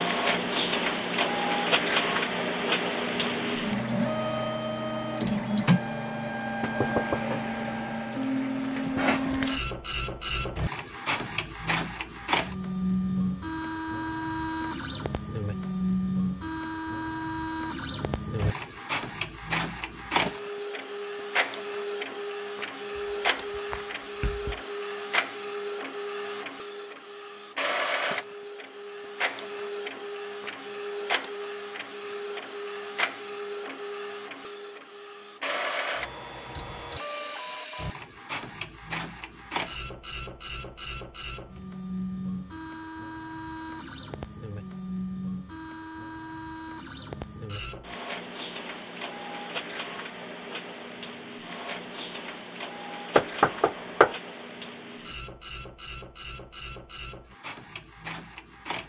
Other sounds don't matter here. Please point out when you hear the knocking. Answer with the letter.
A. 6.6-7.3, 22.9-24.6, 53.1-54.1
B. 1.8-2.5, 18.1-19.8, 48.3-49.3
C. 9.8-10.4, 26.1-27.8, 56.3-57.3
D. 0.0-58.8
A.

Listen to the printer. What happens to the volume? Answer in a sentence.
The loudness of the printer goes down.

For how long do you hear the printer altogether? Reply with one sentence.
The printer can be heard for 59 seconds in total.